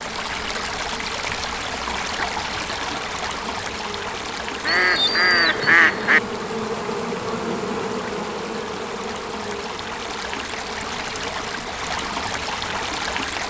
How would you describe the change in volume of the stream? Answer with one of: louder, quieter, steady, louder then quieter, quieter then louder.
quieter then louder.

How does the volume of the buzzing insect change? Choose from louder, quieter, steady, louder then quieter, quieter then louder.
louder then quieter.